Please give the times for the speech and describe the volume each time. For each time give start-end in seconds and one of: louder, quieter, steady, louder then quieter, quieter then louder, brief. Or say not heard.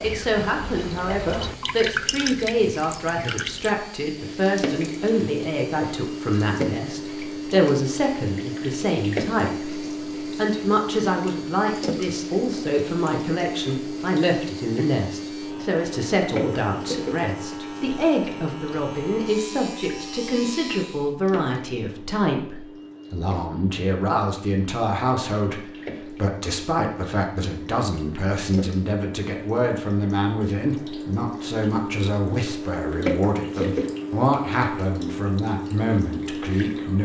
0.0-37.0 steady.